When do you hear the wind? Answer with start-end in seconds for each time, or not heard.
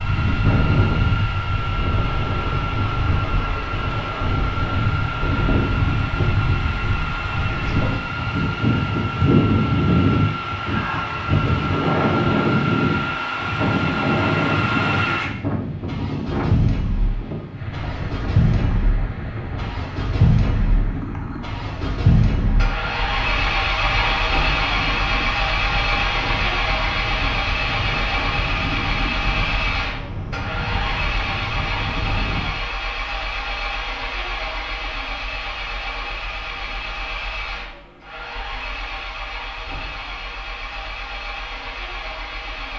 0.0-32.6.